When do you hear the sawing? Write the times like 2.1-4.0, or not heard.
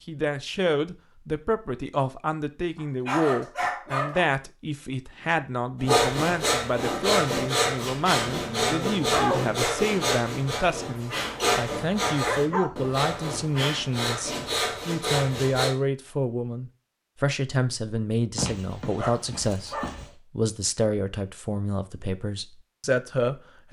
5.8-15.8.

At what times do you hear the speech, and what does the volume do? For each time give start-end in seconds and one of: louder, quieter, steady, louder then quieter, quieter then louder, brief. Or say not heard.
0.1-23.6 steady.